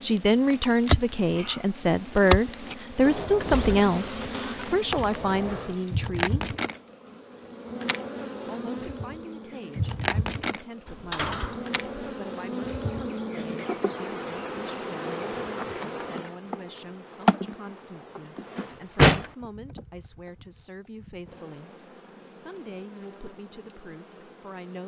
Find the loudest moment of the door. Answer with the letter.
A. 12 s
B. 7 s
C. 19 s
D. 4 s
C.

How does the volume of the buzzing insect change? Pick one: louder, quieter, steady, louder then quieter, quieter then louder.
quieter.